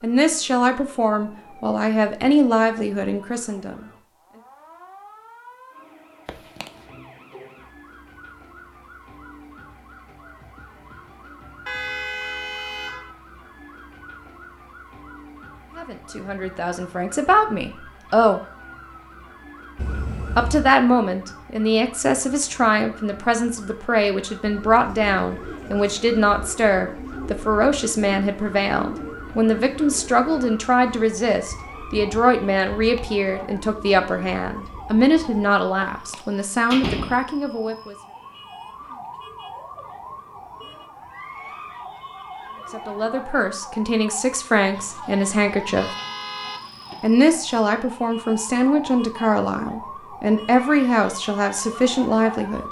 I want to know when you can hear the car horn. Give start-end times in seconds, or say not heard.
11.7-13.1, 19.8-20.8, 44.7-47.1.